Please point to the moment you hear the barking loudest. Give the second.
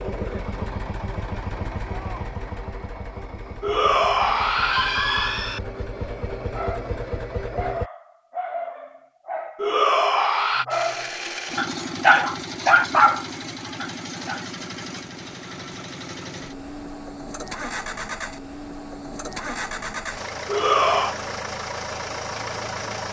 13 s.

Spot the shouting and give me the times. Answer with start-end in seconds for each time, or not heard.
3.6-5.6, 9.6-10.7, 20.4-21.1.